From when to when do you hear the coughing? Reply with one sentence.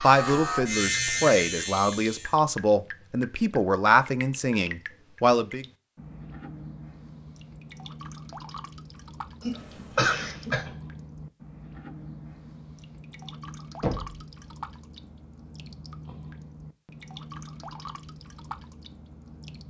The coughing can be heard from 9.4 to 10.8 s.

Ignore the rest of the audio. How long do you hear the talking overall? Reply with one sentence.
The talking can be heard for 6 seconds in total.